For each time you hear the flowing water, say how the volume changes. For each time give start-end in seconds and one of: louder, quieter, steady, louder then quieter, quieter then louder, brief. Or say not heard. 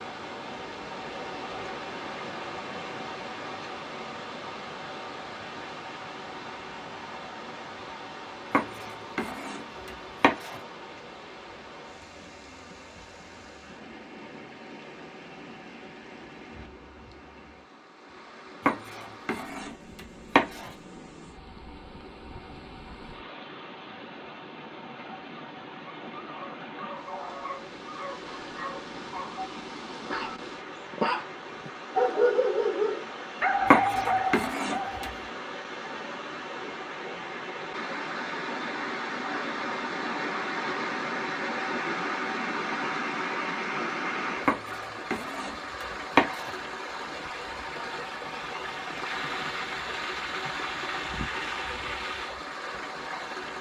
0.0-53.5 quieter then louder.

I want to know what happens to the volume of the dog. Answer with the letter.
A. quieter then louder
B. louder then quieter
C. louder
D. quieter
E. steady
C.